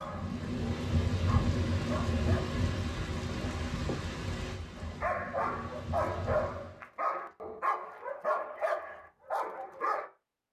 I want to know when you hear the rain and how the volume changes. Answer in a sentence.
You can hear the rain from 0.0 to 6.8 s, getting quieter.